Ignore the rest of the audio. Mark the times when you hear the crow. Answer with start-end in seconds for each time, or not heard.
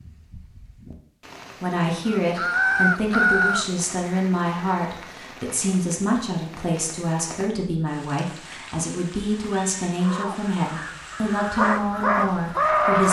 2.0-5.1, 10.0-13.0.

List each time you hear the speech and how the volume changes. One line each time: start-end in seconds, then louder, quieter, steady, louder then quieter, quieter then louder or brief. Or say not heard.
1.6-13.0 steady.